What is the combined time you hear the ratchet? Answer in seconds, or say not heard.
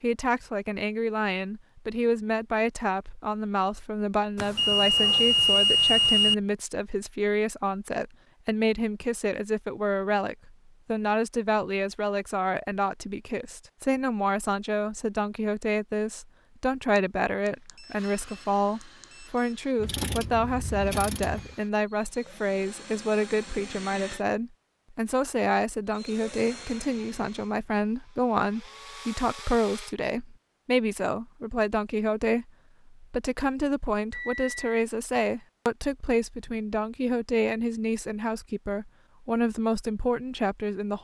2 s.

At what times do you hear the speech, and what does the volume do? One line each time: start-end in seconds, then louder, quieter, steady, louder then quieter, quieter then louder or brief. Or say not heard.
0.0-40.9 steady.